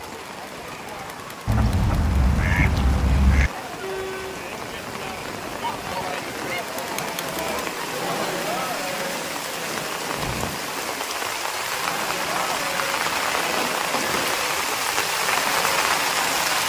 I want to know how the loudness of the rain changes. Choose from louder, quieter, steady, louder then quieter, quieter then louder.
louder.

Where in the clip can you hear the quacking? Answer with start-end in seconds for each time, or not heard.
1.4-3.5.